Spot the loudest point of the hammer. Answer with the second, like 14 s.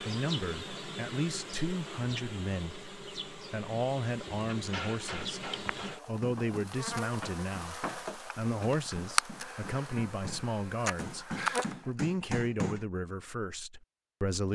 12 s.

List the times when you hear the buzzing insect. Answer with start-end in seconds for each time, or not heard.
0.0-11.8.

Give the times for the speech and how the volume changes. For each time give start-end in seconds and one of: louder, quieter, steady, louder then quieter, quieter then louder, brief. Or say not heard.
0.0-14.5 steady.